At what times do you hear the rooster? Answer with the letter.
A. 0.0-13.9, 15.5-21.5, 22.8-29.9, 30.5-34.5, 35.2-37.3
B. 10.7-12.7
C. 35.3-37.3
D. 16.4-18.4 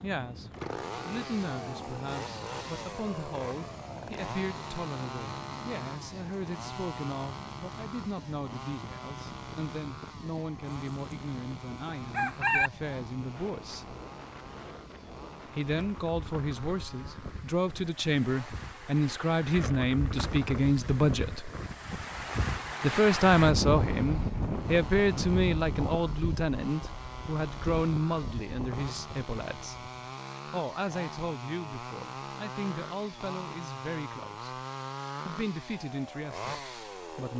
B.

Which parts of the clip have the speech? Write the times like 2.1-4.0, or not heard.
0.0-13.9, 15.5-21.5, 22.8-29.9, 30.5-34.5, 35.2-37.3.